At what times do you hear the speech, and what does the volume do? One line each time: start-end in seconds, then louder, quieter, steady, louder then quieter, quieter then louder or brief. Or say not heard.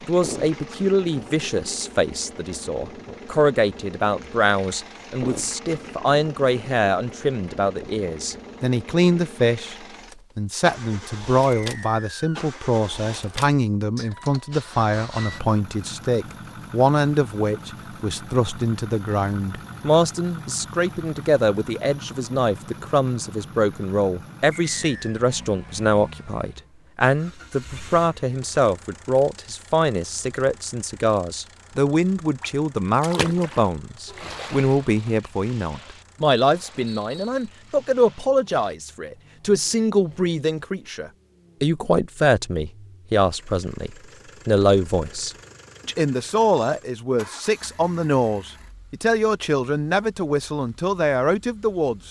0.0-9.8 steady
10.3-52.0 steady.